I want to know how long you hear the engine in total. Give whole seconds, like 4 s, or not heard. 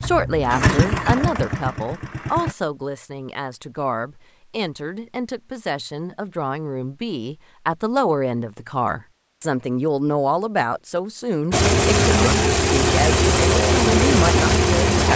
6 s.